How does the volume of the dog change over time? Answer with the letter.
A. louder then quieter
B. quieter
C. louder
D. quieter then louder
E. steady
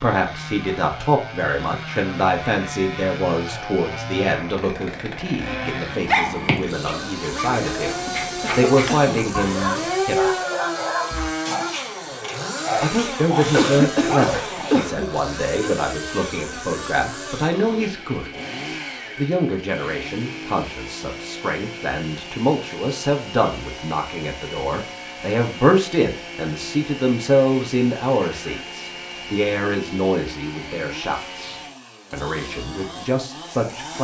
C.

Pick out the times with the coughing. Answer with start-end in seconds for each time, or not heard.
8.4-9.3, 13.4-15.1, 28.2-28.7.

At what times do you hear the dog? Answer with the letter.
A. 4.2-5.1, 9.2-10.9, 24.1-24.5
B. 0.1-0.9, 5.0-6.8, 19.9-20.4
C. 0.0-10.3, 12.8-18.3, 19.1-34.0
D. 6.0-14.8
D.